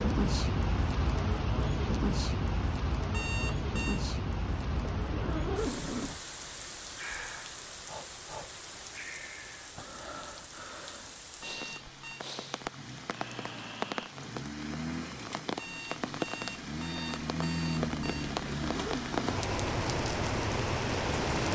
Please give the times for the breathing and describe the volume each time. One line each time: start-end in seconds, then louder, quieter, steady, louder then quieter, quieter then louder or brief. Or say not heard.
7.0-14.2 steady.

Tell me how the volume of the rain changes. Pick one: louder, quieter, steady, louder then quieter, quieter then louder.
quieter then louder.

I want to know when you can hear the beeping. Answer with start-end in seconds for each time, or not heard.
3.1-4.0, 11.4-12.2, 15.6-18.4.